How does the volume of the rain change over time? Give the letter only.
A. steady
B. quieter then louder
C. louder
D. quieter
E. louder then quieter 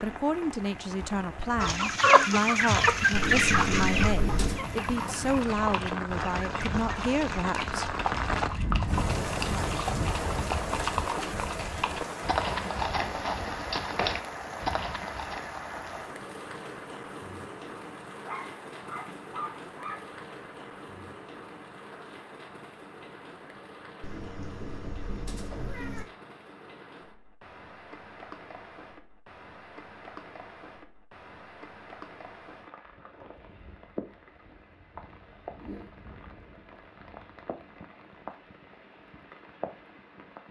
D.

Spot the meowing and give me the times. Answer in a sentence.
The meowing can be heard from 3.1 to 4.6 s and from 24.0 to 26.1 s.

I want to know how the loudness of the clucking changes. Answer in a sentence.
The loudness of the clucking goes down.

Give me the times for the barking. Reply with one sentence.
The barking can be heard from 18.2 to 20.1 s.